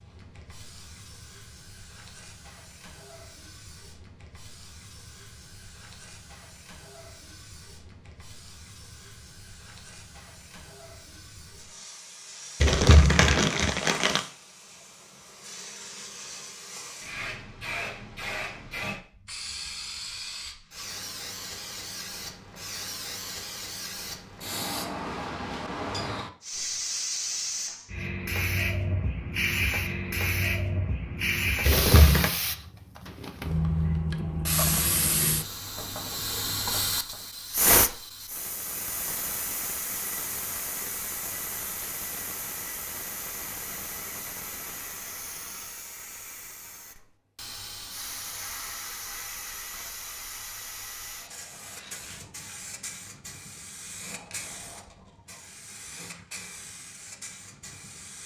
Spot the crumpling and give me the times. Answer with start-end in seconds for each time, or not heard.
12.6-14.2, 31.6-32.3.